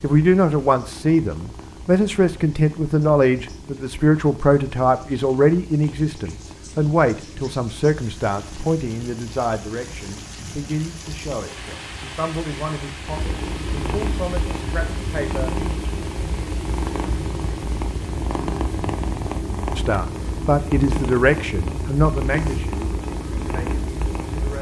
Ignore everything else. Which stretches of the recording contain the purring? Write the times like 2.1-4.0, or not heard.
0.0-24.5.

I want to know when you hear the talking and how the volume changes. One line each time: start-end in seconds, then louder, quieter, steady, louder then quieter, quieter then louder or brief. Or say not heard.
0.0-15.6 quieter
19.8-24.5 quieter.